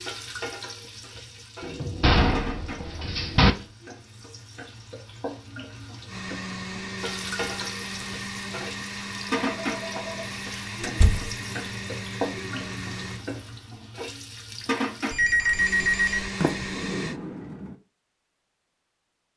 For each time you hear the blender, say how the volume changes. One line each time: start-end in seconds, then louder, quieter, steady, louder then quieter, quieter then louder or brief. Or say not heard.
6.0-13.2 steady
15.5-17.2 brief.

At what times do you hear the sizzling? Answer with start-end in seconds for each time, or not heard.
0.0-15.2.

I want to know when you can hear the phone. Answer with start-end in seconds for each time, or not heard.
1.6-3.7, 9.4-10.3, 15.1-16.3.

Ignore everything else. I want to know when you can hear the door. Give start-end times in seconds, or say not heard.
2.0-3.5, 10.8-11.3, 16.4-17.8.